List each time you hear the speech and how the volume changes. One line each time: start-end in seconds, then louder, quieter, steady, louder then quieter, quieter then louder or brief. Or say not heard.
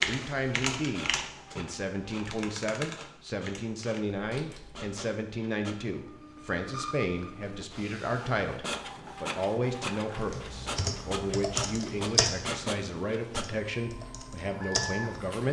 0.1-15.4 steady.